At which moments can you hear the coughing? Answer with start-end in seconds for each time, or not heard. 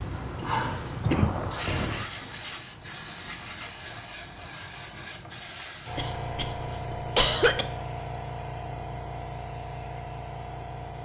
1.0-2.0, 6.0-7.7.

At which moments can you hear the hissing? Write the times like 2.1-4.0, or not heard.
0.0-11.0.